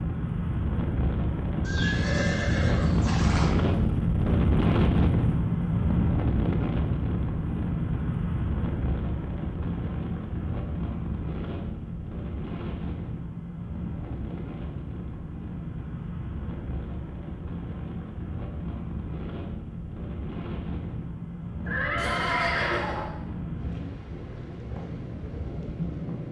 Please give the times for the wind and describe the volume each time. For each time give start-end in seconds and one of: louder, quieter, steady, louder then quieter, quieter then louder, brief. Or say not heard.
0.0-26.2 quieter.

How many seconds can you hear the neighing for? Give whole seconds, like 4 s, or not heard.
3 s.